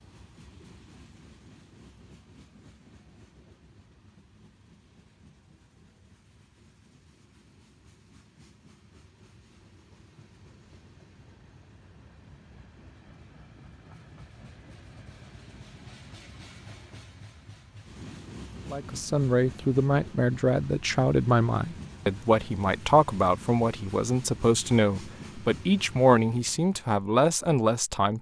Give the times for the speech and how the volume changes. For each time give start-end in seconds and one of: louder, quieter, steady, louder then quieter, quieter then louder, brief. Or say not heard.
18.7-28.1 steady.